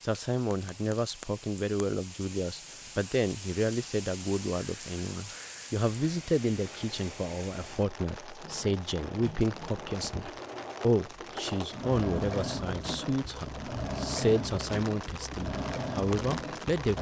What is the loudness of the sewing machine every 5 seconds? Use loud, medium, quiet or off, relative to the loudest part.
off, quiet, loud, loud.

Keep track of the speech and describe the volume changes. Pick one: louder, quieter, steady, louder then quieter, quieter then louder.
steady.